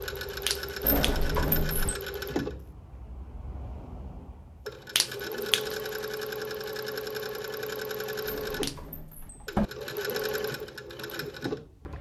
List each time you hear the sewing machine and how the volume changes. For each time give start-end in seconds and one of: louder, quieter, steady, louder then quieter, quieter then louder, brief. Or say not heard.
0.0-11.9 quieter then louder.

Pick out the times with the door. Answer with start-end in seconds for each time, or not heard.
0.8-2.0, 8.2-9.7.